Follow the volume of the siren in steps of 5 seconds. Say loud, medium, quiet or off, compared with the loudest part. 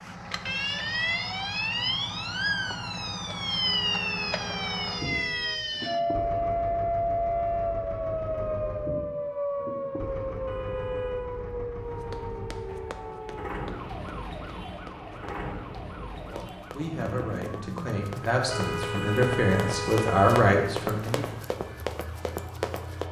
loud, loud, medium, quiet, quiet.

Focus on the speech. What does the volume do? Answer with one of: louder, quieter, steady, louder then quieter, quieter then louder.
louder.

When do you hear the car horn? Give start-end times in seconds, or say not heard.
3.6-5.7, 10.4-11.3, 18.5-20.5.